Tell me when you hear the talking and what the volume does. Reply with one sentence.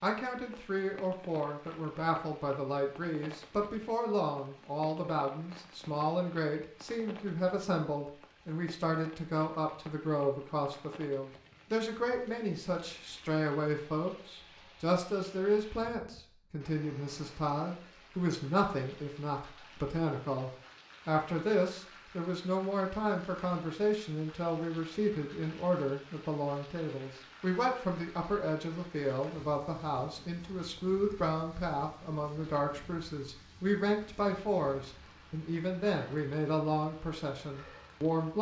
You can hear the talking from 0.0 to 38.3 s, at a steady volume.